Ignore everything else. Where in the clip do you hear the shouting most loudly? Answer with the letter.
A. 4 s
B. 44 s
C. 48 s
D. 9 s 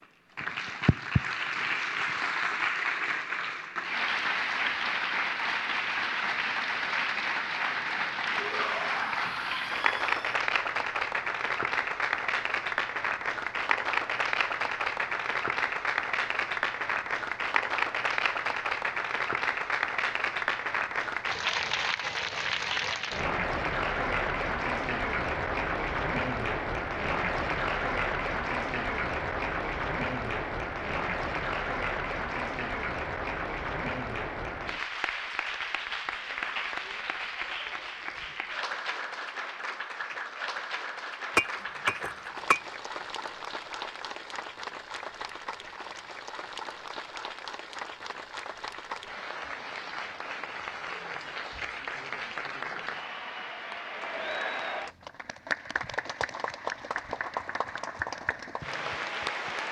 D.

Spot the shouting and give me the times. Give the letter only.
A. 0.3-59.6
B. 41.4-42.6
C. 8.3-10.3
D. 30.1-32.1
C.